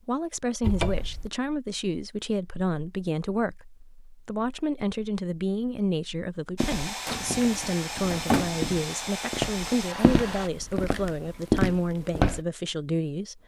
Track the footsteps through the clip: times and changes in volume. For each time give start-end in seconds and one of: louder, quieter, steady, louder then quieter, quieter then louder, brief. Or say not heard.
6.6-12.4 louder.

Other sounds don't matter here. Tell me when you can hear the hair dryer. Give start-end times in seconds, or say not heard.
6.5-10.5.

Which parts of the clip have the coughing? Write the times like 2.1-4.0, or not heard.
not heard.